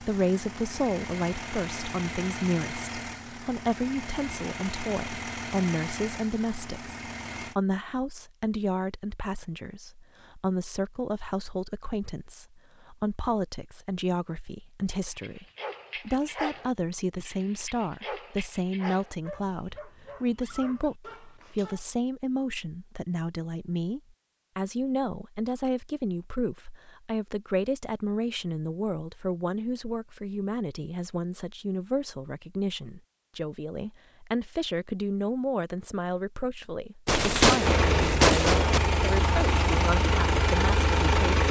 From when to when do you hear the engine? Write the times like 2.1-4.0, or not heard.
0.0-7.5, 37.6-41.4.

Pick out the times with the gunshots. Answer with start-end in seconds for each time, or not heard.
37.0-38.8.